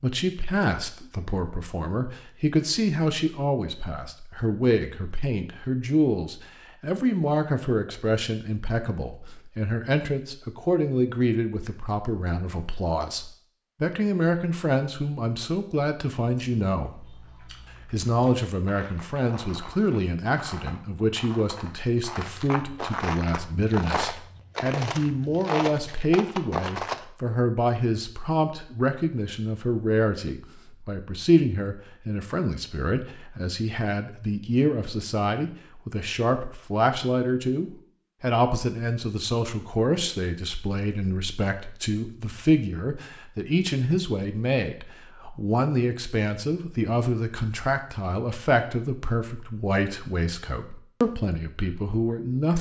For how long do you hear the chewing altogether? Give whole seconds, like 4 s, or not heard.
11 s.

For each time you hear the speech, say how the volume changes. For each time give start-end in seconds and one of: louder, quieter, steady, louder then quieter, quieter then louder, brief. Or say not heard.
0.0-17.2 steady
17.9-52.5 steady.